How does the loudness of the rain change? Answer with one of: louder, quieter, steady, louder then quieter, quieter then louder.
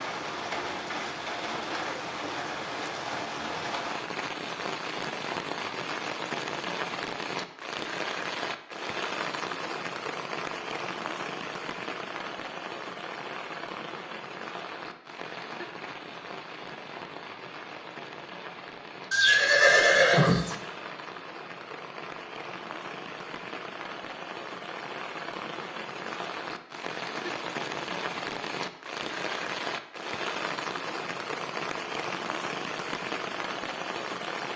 quieter then louder.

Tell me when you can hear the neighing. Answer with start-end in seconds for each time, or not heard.
19.1-20.6.